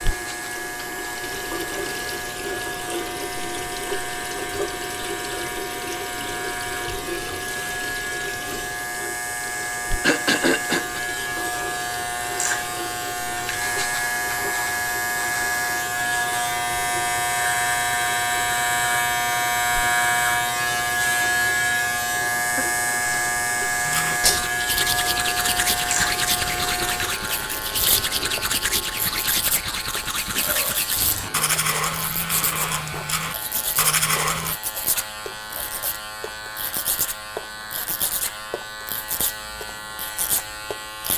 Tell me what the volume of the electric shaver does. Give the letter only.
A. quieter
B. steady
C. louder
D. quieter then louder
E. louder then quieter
E.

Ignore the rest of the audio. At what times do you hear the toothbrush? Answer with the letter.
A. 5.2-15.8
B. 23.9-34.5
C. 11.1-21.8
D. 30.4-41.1
B.